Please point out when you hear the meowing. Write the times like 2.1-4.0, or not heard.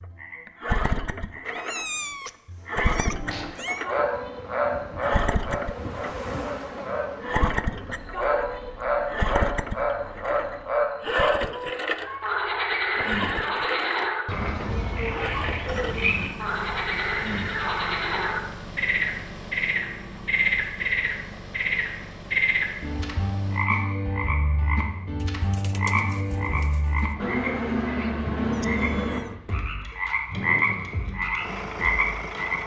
1.4-3.9, 11.9-13.2, 28.5-29.4.